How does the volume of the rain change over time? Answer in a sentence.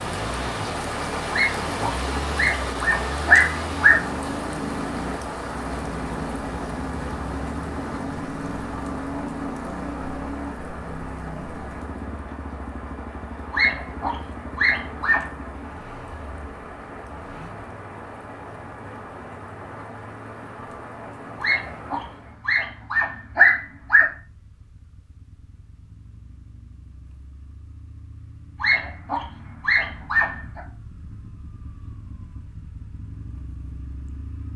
The volume of the rain goes down.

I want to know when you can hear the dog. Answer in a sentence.
You can hear the dog from 1.3 to 4.0 s, from 13.5 to 15.2 s, from 21.4 to 24.1 s and from 28.6 to 30.6 s.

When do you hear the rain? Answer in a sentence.
You can hear the rain from 0.0 to 22.4 s.